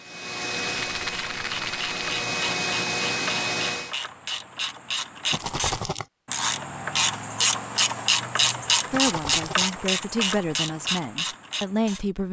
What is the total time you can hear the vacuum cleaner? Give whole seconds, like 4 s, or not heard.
4 s.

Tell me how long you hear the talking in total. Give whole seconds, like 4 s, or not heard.
3 s.